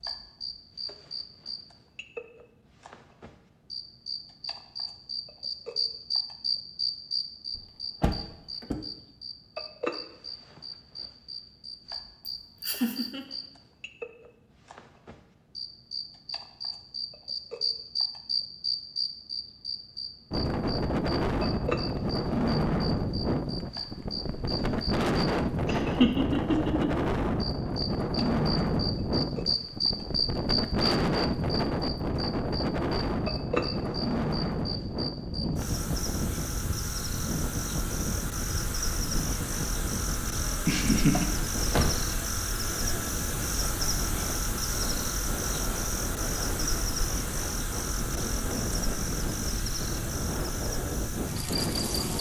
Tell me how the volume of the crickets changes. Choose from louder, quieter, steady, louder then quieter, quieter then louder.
steady.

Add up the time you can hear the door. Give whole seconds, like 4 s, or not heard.
2 s.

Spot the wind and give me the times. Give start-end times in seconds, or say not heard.
20.3-52.1.